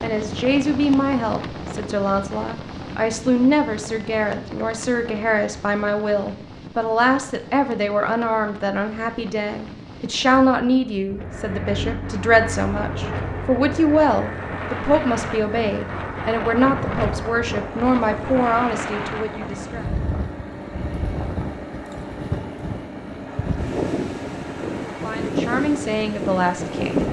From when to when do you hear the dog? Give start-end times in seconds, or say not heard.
not heard.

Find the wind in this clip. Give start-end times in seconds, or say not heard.
0.0-27.0.